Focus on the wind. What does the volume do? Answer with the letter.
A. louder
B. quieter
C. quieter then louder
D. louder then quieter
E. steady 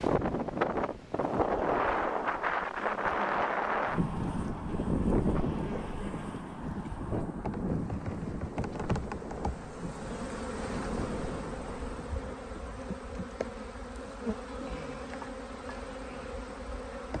B.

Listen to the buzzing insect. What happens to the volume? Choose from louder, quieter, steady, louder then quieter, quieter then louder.
louder.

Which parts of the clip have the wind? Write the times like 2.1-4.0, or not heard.
0.0-12.3.